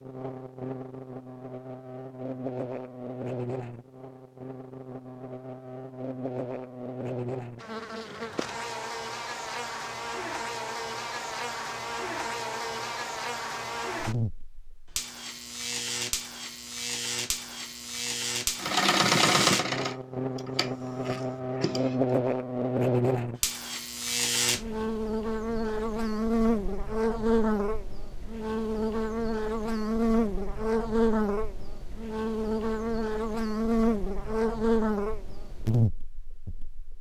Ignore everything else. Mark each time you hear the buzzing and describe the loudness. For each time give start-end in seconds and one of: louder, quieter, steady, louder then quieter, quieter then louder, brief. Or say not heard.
0.0-36.9 louder.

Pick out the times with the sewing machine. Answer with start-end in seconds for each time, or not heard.
18.6-22.0.